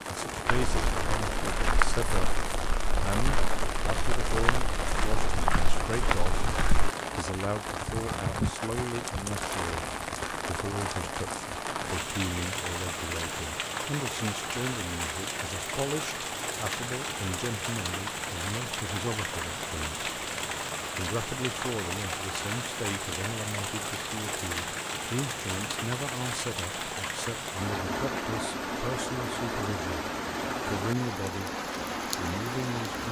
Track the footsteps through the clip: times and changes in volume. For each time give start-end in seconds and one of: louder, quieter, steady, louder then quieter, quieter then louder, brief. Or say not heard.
0.5-6.9 quieter then louder.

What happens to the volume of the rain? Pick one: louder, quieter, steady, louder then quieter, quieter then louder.
steady.